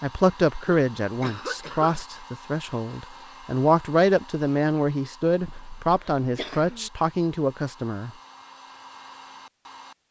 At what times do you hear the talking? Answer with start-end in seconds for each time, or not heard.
0.0-8.1.